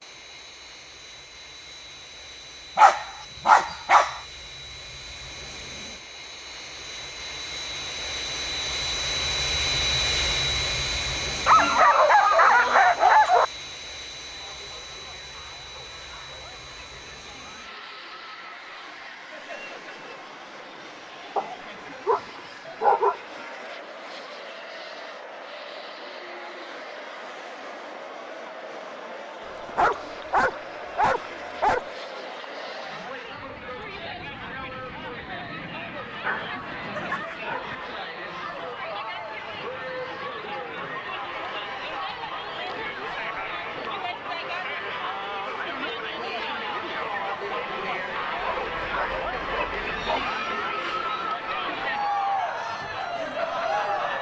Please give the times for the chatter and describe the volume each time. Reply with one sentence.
The chatter can be heard from 14.2 to 54.1 s, getting louder.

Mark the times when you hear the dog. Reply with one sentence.
The dog can be heard from 2.8 to 4.2 s, from 11.4 to 13.4 s, from 21.4 to 23.2 s, from 29.4 to 31.9 s, from 36.2 to 38.0 s and from 48.4 to 50.3 s.